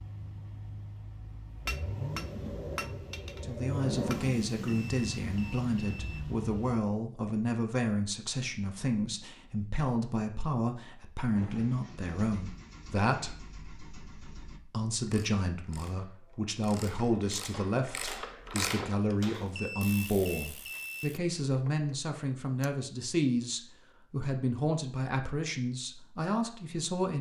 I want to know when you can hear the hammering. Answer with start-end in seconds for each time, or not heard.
1.6-4.2, 17.5-19.5.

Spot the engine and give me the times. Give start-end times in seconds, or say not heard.
0.0-6.8, 11.3-14.6.